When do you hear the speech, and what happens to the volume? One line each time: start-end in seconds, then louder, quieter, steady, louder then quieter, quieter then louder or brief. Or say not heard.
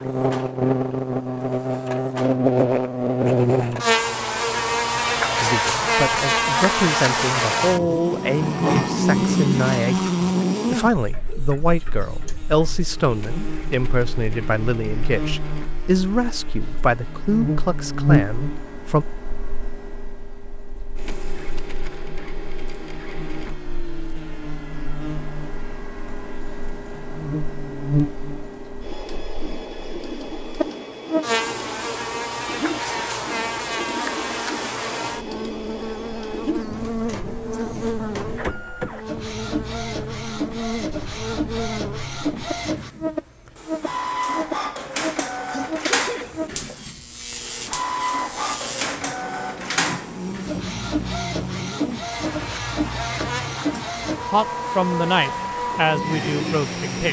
5.4-19.1 steady
54.3-57.0 brief.